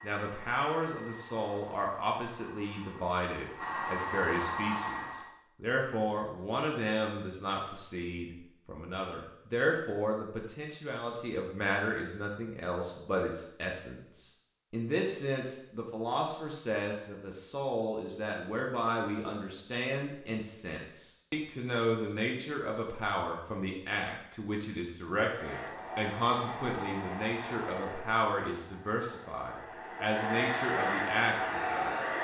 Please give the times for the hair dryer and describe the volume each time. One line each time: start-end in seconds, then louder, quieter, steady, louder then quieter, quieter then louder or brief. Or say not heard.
0.0-5.3 louder
25.2-32.1 quieter then louder.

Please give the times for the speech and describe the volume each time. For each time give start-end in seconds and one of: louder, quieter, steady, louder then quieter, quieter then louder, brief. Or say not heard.
0.0-32.0 steady.